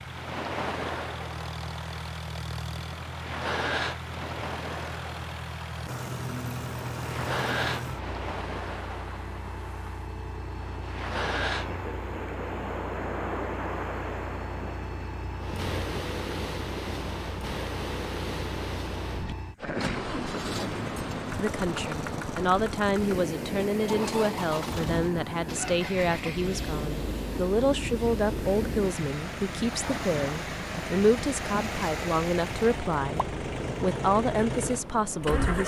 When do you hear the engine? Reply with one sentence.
The engine can be heard from 0.0 to 35.6 s.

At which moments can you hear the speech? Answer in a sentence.
You can hear the speech from 21.4 to 35.6 s.